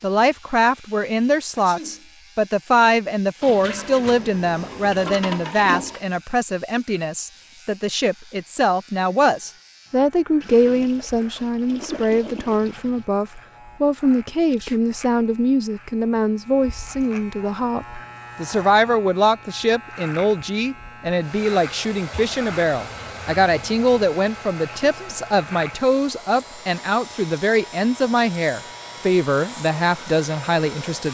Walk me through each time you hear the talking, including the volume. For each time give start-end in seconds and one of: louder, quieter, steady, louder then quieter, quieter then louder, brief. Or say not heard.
0.0-31.0 steady.